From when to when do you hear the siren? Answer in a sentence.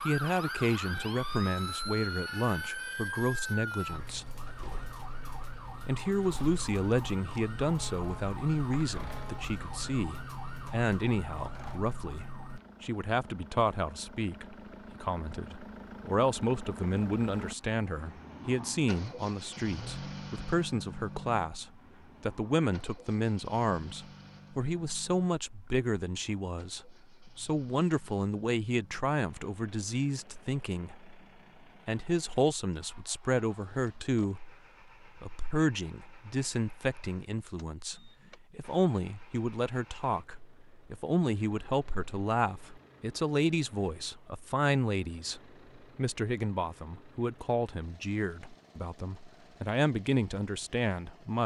You can hear the siren from 0.0 to 12.6 s.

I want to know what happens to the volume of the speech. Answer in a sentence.
The loudness of the speech stays about the same.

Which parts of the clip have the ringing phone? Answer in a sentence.
You can't hear the ringing phone here.